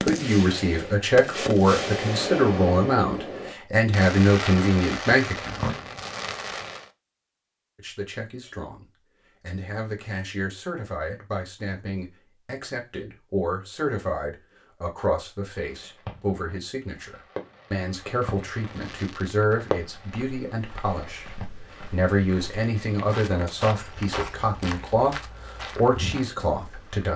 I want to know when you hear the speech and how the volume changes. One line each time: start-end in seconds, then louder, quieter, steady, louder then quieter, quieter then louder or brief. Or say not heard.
0.0-5.8 steady
7.8-27.1 louder.